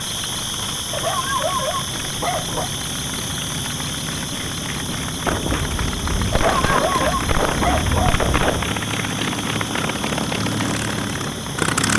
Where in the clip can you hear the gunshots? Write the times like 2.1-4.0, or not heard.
5.2-8.8.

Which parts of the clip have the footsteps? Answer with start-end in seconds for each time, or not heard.
not heard.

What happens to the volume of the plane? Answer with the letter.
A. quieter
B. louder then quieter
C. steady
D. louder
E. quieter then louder
D.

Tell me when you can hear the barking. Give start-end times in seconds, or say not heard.
0.9-2.7, 6.3-8.2.